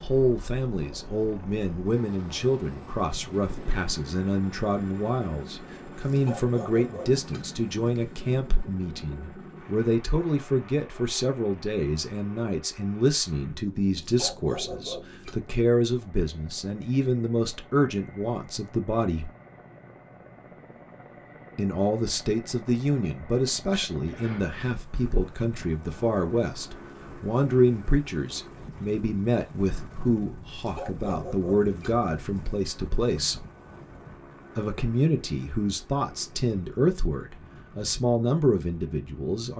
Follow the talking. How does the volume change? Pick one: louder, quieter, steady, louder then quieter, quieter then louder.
steady.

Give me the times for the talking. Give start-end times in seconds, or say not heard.
0.0-19.3, 21.6-33.5, 34.5-39.5.